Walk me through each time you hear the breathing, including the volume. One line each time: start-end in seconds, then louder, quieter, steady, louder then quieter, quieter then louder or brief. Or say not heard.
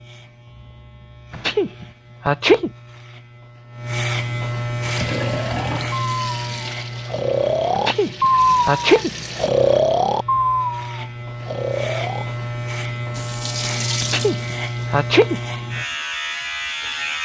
5.0-12.2 louder then quieter.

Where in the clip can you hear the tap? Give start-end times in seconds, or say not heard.
4.8-9.5, 13.1-15.0.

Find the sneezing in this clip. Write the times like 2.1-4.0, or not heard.
1.3-2.7, 7.8-9.1, 14.0-15.4.